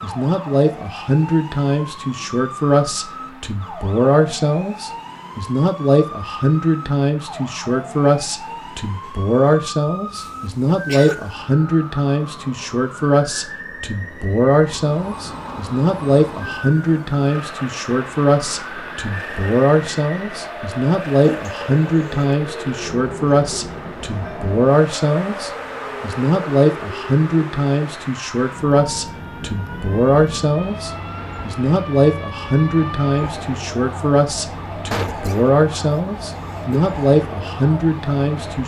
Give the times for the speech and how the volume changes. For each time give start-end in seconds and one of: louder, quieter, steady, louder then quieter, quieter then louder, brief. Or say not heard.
0.0-38.6 steady.